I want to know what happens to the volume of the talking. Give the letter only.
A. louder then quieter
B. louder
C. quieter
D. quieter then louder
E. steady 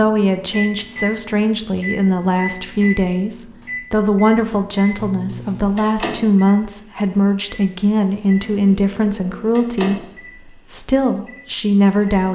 E.